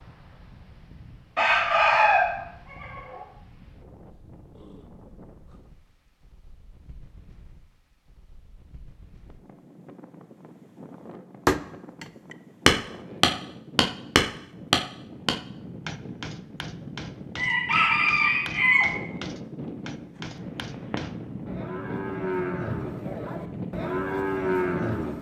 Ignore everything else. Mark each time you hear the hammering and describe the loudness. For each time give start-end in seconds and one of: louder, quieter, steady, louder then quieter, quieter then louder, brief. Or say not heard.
11.4-21.2 quieter.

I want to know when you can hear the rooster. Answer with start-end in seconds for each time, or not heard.
1.4-3.2, 17.4-18.9.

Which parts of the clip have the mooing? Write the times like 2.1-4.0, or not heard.
20.2-25.1.